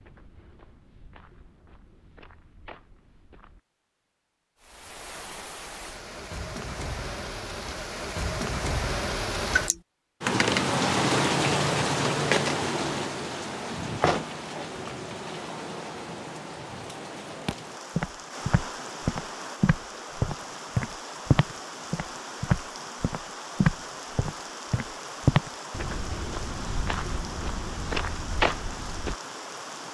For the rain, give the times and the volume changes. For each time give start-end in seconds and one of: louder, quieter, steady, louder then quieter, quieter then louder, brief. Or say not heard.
4.6-29.8 louder then quieter.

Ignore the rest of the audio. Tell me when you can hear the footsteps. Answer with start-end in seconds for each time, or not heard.
0.0-3.6, 17.4-29.1.